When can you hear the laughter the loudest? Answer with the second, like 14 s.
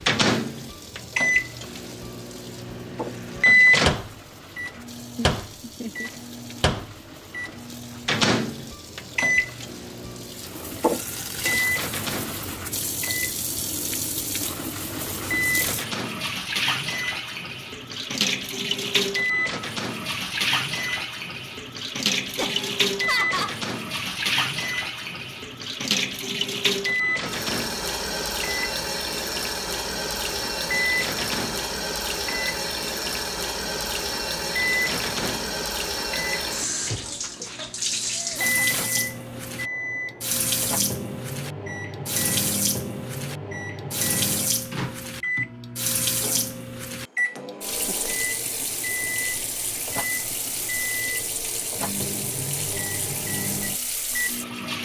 23 s.